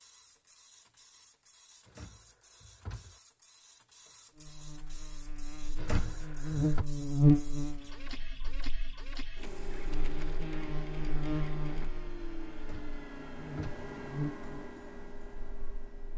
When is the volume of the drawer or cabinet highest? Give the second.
6 s.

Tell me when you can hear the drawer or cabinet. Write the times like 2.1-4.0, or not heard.
1.9-3.2, 5.8-6.8, 12.6-13.8.